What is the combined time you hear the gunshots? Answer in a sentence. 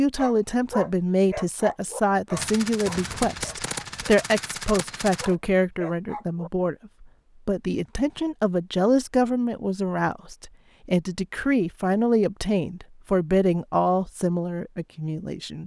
The gunshots can be heard for 3 seconds in total.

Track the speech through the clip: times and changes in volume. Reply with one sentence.
The speech can be heard from 0.0 to 15.6 s, at a steady volume.